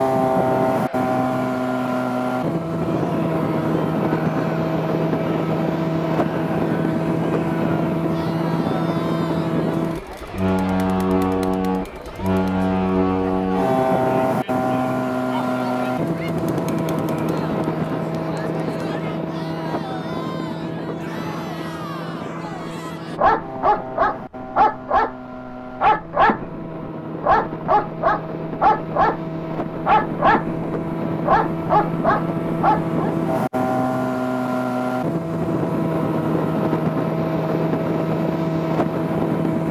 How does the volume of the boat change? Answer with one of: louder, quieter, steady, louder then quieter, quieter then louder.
quieter then louder.